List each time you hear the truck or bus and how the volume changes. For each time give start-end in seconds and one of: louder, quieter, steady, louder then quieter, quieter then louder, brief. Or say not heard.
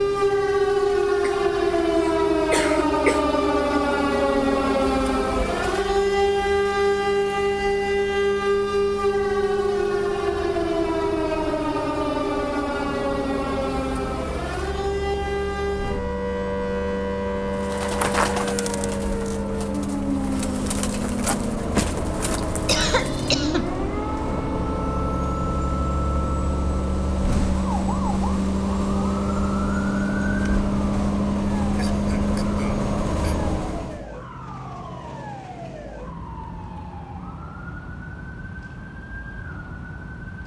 0.0-34.0 louder.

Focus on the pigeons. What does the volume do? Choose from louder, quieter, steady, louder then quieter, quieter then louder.
quieter then louder.